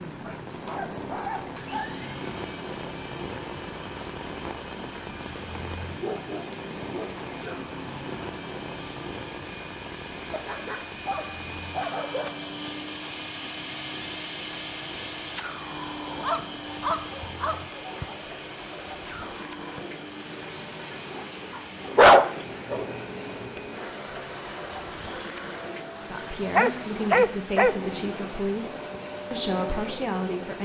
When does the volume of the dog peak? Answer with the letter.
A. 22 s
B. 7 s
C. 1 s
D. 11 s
A.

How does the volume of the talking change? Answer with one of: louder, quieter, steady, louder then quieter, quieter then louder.
quieter then louder.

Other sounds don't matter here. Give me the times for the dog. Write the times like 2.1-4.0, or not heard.
0.2-1.9, 6.0-7.7, 10.3-12.4, 16.1-18.1, 21.6-22.9, 26.6-27.8.